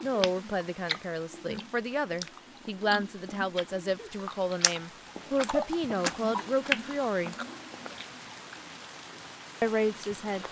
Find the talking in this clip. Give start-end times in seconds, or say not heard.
0.0-7.3, 9.6-10.4.